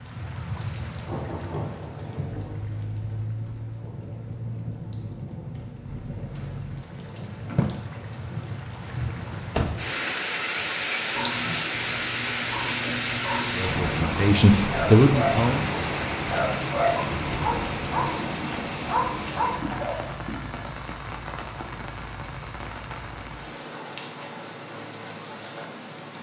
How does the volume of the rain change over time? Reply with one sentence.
The loudness of the rain goes up, then down.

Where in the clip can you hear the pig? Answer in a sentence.
The pig can't be heard in this clip.